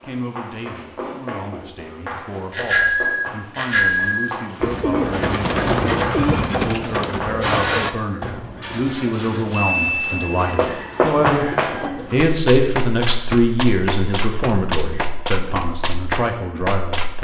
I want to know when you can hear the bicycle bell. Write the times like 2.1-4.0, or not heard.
2.5-4.3.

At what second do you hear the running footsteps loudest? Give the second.
11 s.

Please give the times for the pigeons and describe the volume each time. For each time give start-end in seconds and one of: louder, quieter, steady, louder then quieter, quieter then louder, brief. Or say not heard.
4.6-12.2 quieter.